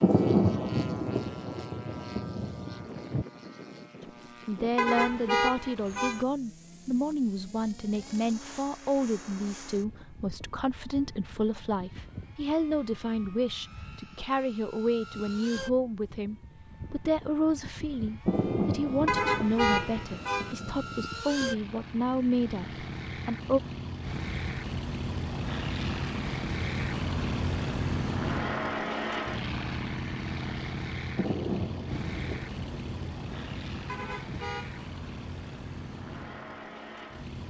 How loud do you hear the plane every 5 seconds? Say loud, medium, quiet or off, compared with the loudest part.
quiet, quiet, quiet, quiet, medium, loud, medium, medium.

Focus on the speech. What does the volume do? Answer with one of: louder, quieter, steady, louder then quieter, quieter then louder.
steady.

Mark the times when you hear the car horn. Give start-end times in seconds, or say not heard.
4.8-6.2, 19.1-20.6, 33.9-34.8.